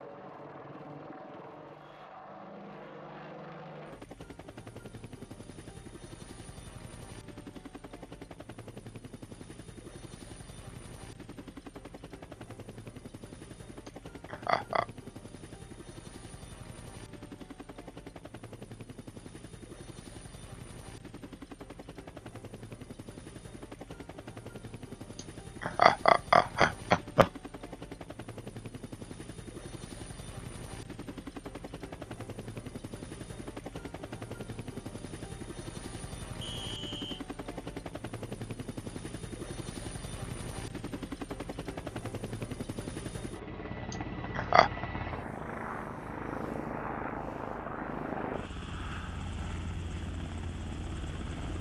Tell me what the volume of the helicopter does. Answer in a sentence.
The volume of the helicopter goes up.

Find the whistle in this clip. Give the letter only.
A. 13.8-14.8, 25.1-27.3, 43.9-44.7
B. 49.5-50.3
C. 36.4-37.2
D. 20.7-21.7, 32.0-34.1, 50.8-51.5
C.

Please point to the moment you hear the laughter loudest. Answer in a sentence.
The loudest moment of the laughter is at 26 seconds.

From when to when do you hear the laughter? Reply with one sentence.
You can hear the laughter from 13.8 to 14.8 s, from 25.1 to 27.3 s and from 43.9 to 44.7 s.